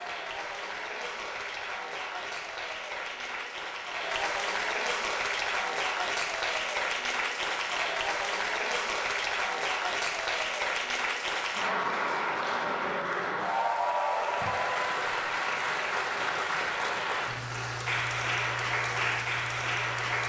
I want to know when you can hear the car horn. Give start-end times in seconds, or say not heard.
14.4-15.0.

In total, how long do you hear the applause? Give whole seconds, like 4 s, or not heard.
20 s.